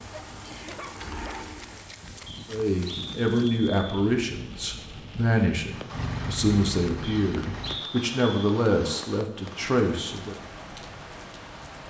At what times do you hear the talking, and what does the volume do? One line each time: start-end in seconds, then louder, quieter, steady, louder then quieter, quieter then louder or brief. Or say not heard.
2.5-10.3 steady.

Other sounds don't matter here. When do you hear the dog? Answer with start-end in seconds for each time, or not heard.
0.1-1.6.